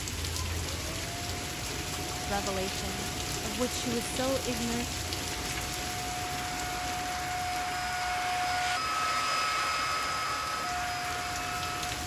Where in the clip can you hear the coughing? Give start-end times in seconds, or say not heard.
not heard.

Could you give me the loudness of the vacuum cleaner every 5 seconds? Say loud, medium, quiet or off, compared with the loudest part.
quiet, loud, loud.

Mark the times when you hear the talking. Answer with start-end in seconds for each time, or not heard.
2.2-4.8.